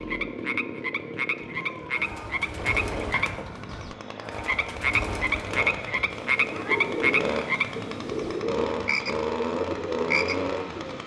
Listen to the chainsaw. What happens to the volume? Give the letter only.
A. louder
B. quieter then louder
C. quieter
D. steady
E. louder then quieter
A.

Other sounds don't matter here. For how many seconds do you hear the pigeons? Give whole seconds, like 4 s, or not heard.
9 s.